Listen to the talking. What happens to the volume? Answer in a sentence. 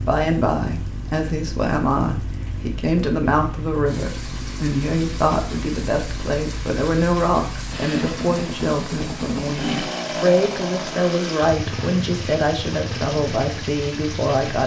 The loudness of the talking stays about the same.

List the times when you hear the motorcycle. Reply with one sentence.
The motorcycle can be heard from 0.0 to 14.6 s.